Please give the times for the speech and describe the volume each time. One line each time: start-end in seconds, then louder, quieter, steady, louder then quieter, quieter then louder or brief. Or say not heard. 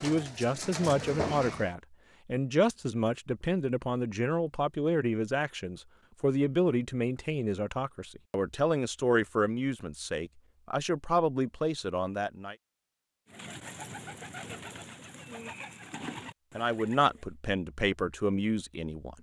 0.0-12.6 steady
16.6-19.1 brief.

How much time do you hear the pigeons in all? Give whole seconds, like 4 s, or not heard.
6 s.